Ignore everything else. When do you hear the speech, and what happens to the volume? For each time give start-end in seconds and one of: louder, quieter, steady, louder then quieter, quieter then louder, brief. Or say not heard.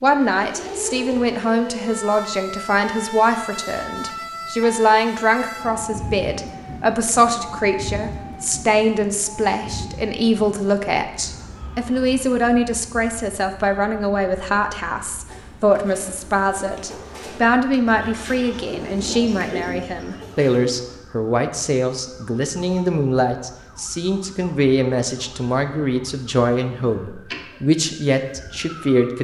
0.0-29.1 steady.